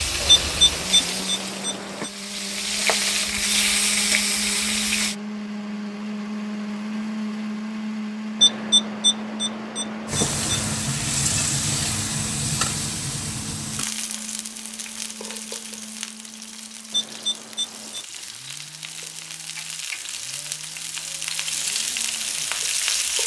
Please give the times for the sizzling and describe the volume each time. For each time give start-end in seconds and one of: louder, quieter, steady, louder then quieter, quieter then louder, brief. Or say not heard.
0.0-5.2 quieter then louder
10.1-23.2 quieter then louder.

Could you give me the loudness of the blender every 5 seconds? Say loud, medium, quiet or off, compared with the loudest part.
medium, loud, medium, quiet, quiet.